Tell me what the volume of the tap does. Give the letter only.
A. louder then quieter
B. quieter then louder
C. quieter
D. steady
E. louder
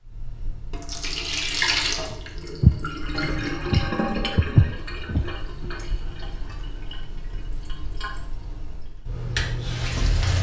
B.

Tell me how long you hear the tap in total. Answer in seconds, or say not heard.
10 s.